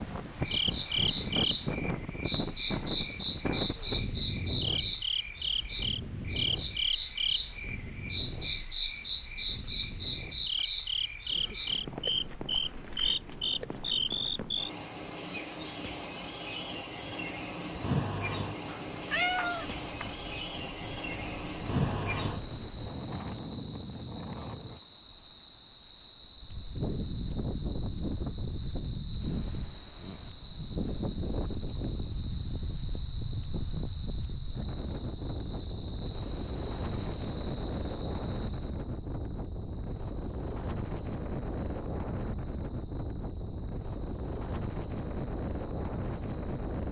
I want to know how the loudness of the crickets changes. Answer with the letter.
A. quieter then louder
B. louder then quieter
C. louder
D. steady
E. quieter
E.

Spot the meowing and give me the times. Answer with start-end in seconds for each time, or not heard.
18.6-20.1.